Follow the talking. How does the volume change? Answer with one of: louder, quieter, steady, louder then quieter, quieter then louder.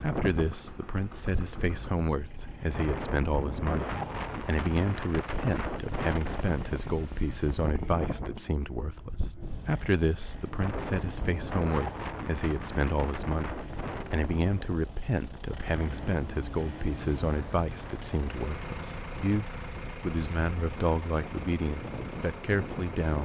steady.